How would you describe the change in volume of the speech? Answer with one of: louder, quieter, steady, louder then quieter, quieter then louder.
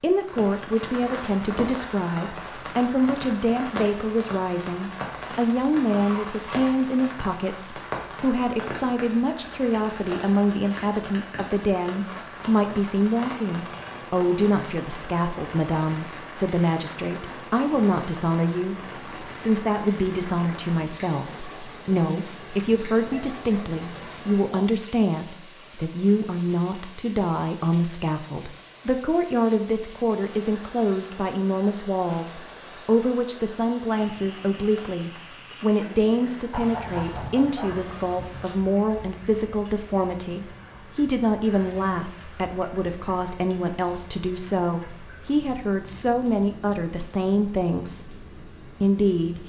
steady.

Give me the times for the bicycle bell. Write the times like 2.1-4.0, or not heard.
not heard.